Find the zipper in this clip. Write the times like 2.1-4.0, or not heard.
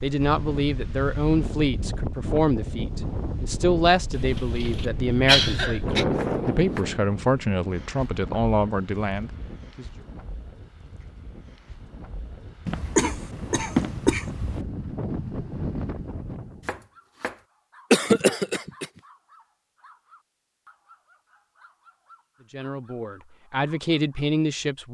not heard.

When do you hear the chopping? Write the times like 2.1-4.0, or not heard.
6.2-6.9, 16.6-17.4.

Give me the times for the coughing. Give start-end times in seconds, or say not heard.
4.2-6.0, 12.7-14.6, 17.9-18.9.